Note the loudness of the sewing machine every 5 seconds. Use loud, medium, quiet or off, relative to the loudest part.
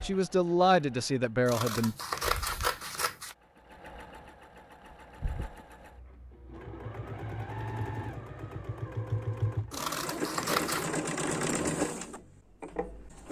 quiet, medium, loud.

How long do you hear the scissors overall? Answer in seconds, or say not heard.
3 s.